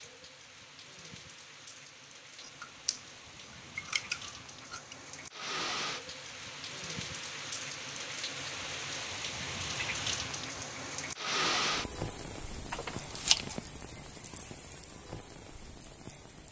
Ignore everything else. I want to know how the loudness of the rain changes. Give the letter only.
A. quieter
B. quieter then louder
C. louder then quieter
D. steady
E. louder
C.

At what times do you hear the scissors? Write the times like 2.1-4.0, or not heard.
2.4-5.0, 12.7-13.6.